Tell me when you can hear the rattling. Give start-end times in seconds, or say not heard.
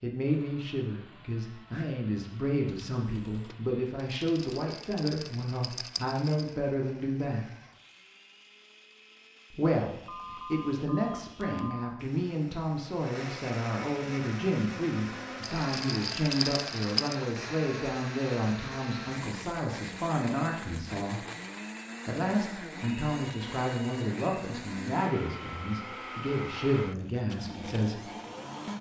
4.1-6.5, 15.4-17.1.